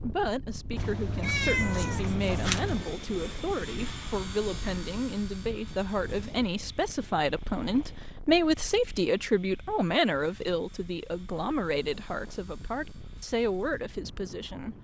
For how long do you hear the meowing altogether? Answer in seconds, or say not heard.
2 s.